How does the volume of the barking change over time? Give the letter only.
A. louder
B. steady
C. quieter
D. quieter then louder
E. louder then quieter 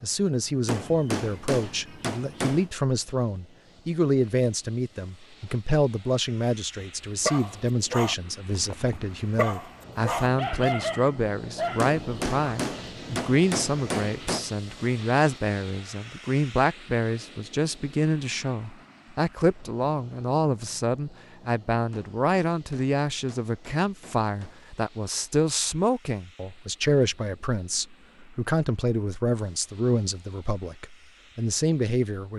D.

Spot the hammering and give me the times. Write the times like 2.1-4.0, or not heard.
0.7-2.7, 11.8-14.4, 21.9-24.6.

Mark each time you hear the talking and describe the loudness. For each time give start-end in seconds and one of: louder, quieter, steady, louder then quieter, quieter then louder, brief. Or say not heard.
0.0-32.3 steady.